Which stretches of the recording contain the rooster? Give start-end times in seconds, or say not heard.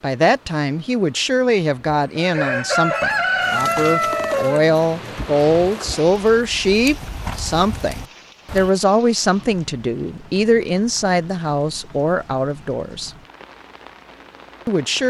2.1-4.6.